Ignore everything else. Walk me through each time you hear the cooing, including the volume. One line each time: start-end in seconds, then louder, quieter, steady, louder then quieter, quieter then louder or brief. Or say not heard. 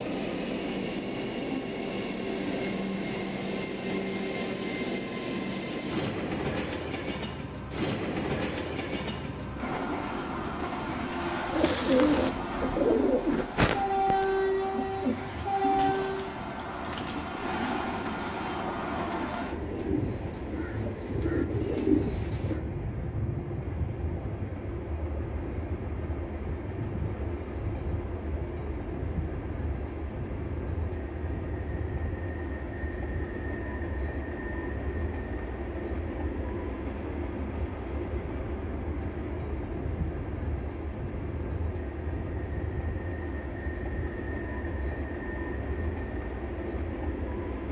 11.5-22.6 quieter then louder.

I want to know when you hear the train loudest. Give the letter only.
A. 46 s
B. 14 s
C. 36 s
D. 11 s
B.